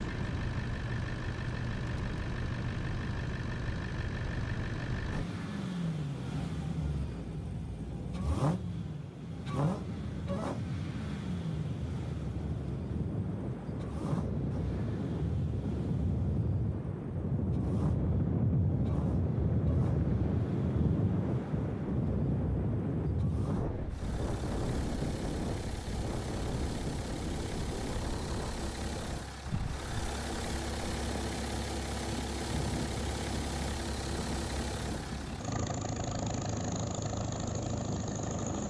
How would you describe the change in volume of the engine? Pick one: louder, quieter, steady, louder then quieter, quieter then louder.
quieter then louder.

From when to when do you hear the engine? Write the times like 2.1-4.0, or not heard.
0.0-38.6.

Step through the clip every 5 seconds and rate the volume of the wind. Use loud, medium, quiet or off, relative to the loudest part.
medium, medium, medium, loud, loud, medium, medium, medium.